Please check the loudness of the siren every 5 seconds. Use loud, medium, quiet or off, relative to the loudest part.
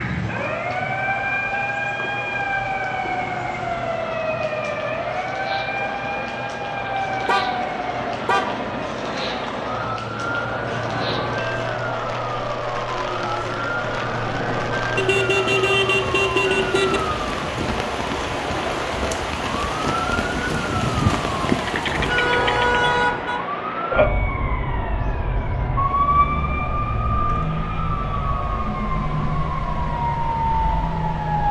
loud, medium, medium, medium, loud, loud, loud.